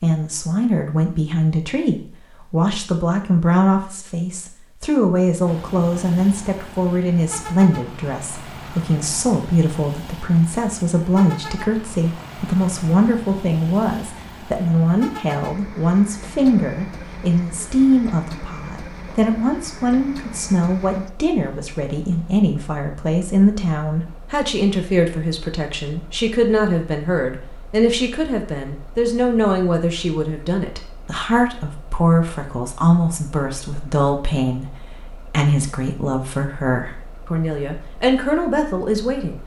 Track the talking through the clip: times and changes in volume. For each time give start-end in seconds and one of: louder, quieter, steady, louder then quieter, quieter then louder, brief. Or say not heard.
0.0-39.4 steady.